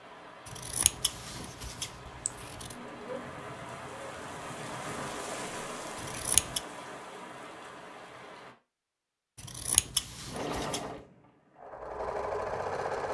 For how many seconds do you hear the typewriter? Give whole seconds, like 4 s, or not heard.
not heard.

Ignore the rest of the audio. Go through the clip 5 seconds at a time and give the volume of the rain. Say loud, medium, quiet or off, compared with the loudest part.
loud, loud, off.